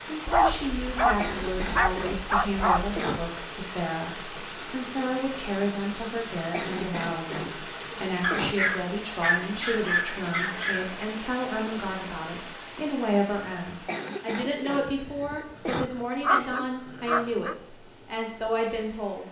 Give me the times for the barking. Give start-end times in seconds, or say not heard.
0.2-3.0, 8.2-11.1, 14.8-17.6.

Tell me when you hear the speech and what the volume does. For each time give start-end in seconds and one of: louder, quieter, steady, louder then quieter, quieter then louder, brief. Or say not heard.
0.1-19.2 steady.